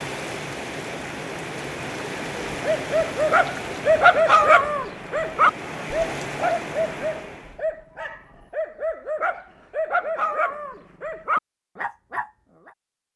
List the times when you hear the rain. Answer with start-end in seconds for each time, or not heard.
0.0-7.7.